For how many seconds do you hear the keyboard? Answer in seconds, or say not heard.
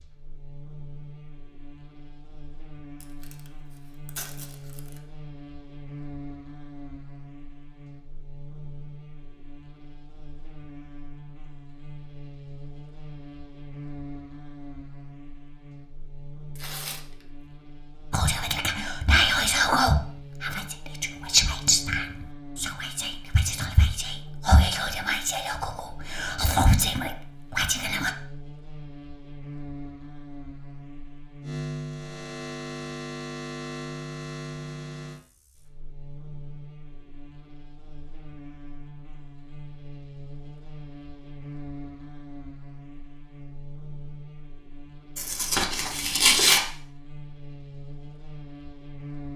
not heard.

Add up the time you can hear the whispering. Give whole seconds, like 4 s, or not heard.
10 s.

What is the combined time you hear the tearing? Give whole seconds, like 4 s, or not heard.
4 s.